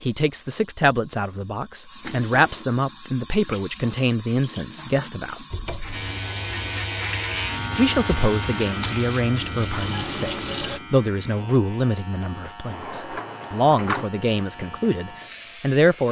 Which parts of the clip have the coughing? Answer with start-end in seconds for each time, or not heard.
not heard.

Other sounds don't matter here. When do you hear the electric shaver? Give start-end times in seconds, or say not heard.
5.9-16.0.